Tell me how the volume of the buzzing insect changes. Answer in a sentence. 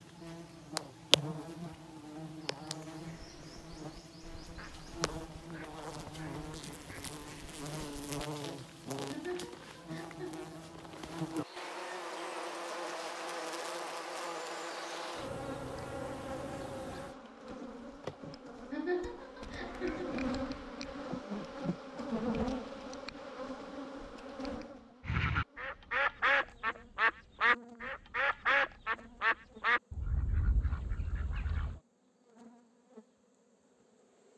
The volume of the buzzing insect goes down.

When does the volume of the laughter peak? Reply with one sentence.
The loudest moment of the laughter is at 19 seconds.